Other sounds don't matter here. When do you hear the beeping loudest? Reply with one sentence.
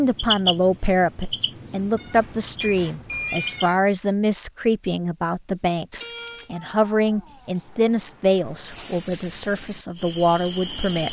The volume of the beeping peaks at 3 seconds.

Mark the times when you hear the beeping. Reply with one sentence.
The beeping can be heard from 2.6 to 4.0 s and from 5.9 to 6.5 s.